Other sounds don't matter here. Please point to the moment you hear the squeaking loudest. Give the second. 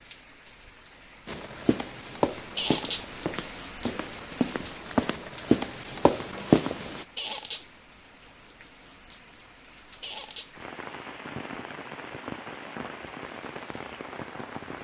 3 s.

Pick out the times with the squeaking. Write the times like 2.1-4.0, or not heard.
2.5-3.0, 7.2-7.7, 10.0-10.5.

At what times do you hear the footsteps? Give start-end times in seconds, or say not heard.
1.2-7.0.